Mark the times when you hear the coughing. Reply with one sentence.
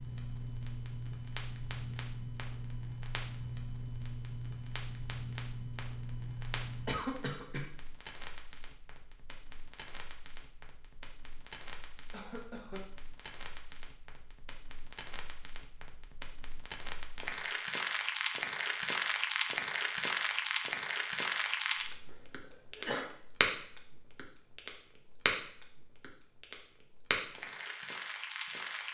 The coughing can be heard from 6.8 to 7.7 s, from 12.1 to 12.8 s and from 22.1 to 23.1 s.